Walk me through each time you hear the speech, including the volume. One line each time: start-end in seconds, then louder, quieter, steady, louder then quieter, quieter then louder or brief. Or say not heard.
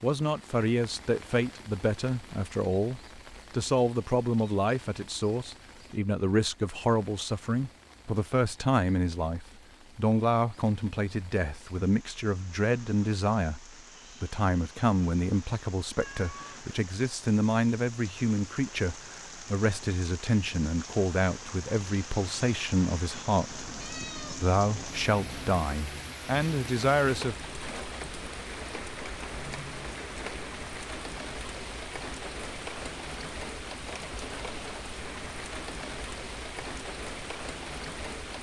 0.0-27.4 steady.